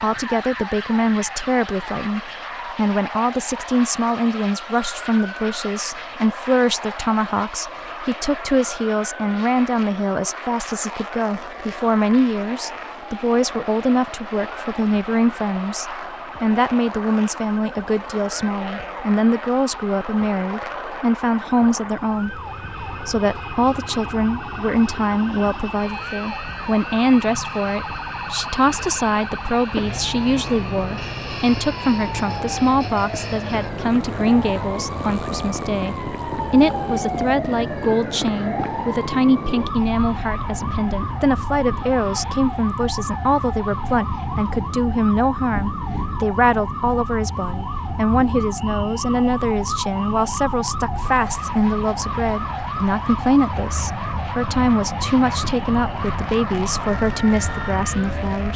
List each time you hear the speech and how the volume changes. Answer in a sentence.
You can hear the speech from 0.0 to 58.5 s, at a steady volume.